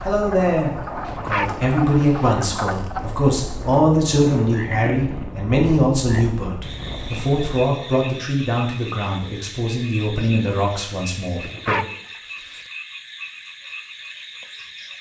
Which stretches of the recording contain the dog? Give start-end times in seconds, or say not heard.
1.1-2.4, 11.4-12.7.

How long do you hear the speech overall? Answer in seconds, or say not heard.
12 s.